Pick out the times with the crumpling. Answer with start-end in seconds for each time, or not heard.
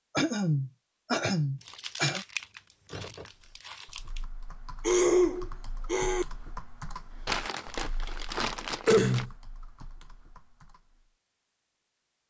1.6-4.2, 7.2-9.2.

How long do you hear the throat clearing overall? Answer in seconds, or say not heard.
4 s.